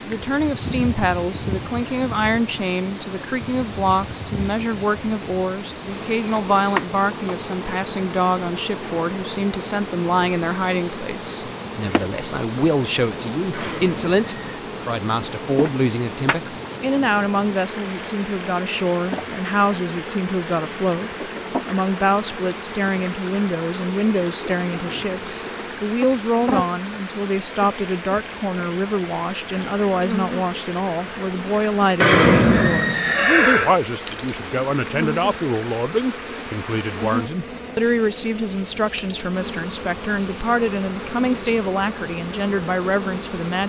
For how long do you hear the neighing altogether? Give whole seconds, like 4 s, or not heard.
3 s.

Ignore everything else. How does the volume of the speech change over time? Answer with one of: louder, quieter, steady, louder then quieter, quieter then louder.
steady.